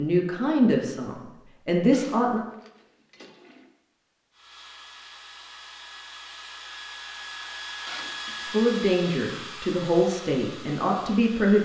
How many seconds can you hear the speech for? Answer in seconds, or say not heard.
6 s.